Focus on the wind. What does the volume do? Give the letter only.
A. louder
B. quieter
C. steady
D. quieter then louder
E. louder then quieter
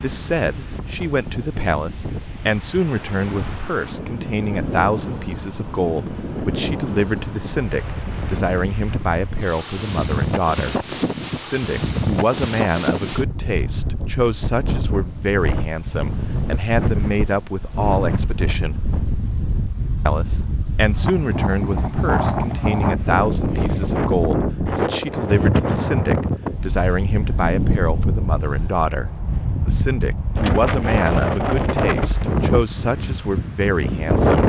A.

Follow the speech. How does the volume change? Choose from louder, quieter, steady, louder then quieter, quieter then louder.
steady.